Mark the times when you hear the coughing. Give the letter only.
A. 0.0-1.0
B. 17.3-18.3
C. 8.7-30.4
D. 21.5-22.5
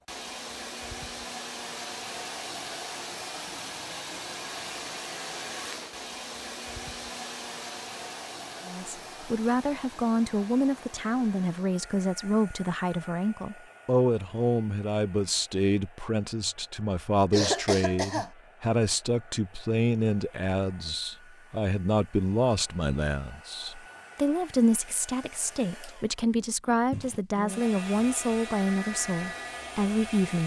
B.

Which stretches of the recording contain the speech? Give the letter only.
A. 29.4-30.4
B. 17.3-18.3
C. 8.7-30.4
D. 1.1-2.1
C.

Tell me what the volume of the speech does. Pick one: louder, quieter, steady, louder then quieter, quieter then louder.
steady.